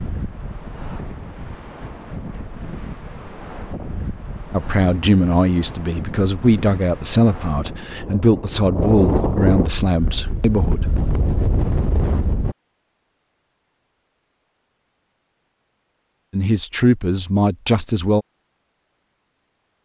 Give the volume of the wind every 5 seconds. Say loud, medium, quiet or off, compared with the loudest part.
medium, loud, loud, off.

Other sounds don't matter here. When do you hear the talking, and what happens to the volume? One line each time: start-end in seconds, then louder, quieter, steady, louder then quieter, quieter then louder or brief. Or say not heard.
4.5-10.8 steady
16.3-18.2 brief.